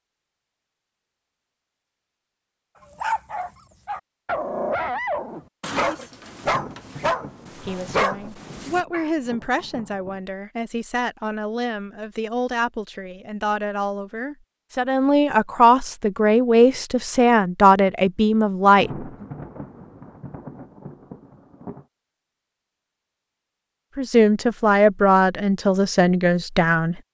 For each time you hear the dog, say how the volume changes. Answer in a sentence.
The dog can be heard from 3.0 to 9.1 s, at a steady volume.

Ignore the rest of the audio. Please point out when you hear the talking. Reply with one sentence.
You can hear the talking from 7.5 to 19.2 s and from 23.9 to 26.9 s.